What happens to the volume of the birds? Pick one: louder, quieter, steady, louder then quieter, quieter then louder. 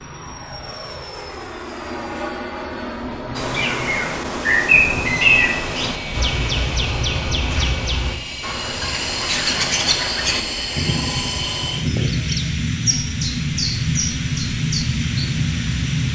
quieter.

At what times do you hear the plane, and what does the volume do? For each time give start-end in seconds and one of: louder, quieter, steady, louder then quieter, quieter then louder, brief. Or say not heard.
0.0-16.1 louder.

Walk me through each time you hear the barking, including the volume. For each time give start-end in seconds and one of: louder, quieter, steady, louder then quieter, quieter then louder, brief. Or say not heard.
not heard.